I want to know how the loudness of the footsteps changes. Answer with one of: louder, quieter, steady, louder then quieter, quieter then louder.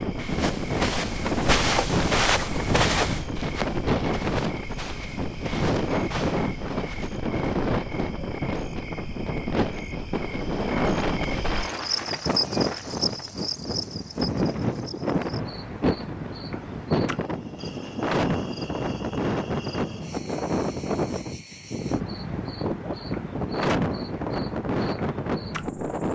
quieter.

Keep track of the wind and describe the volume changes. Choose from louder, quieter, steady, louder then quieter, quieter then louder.
steady.